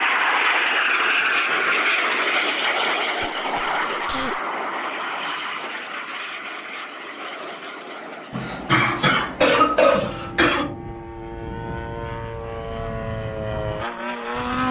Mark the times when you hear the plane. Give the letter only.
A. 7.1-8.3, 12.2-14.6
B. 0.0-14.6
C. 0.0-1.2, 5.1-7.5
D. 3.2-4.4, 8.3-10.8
B.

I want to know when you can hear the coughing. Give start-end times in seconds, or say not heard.
3.2-4.4, 8.3-10.8.